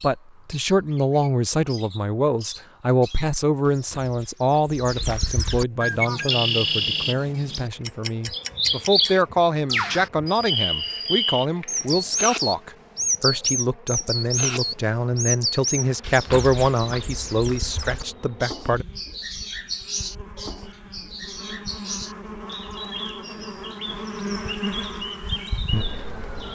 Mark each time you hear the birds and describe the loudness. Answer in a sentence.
You can hear the birds from 0.0 to 26.5 s, getting louder then quieter.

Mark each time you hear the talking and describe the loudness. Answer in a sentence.
You can hear the talking from 0.0 to 18.9 s, at a steady volume.